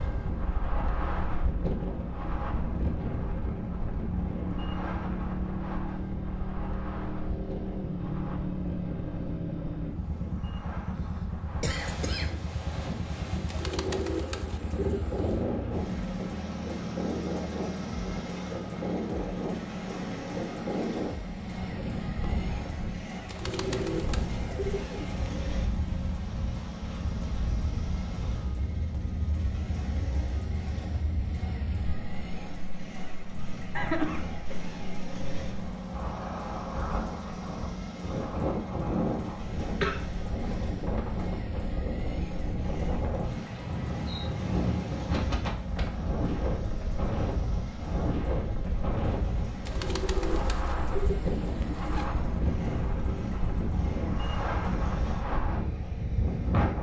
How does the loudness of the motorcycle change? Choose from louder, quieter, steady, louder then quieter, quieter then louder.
quieter.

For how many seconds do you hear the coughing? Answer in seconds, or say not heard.
3 s.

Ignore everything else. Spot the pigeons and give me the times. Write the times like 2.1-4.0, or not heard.
13.4-15.5, 23.2-25.2, 49.6-52.1.